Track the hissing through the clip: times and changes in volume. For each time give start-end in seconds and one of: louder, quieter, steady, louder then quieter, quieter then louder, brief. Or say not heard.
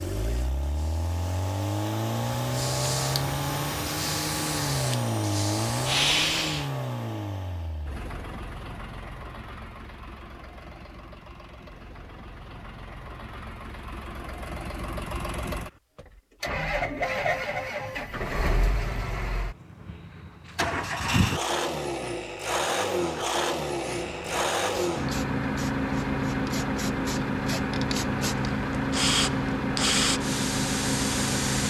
0.0-6.7 louder
23.7-31.6 louder.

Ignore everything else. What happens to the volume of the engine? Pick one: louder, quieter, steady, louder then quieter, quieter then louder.
quieter then louder.